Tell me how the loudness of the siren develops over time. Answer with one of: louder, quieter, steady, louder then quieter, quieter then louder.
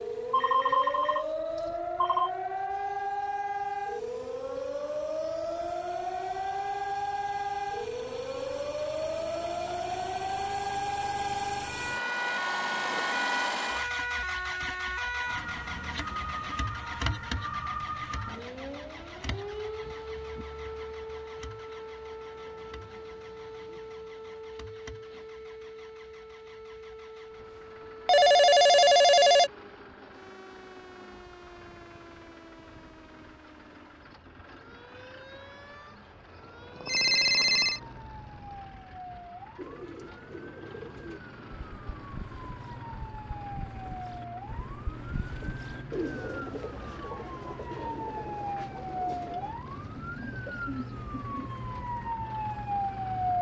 quieter then louder.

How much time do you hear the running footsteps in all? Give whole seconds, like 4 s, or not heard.
not heard.